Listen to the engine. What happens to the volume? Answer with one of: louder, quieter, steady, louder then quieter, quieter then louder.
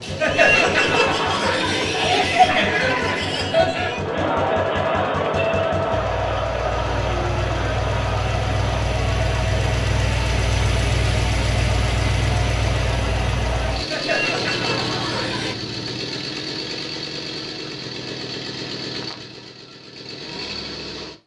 louder then quieter.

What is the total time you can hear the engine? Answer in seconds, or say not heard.
21 s.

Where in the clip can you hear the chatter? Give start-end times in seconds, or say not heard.
0.0-15.6.